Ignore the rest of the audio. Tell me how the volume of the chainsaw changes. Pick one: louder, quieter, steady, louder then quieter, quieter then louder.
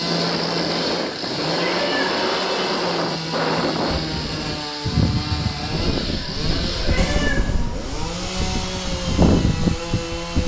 steady.